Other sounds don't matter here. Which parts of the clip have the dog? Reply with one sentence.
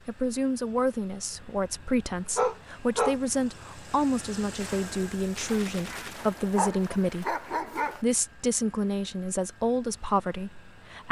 You can hear the dog from 1.4 to 3.1 s and from 6.5 to 8.0 s.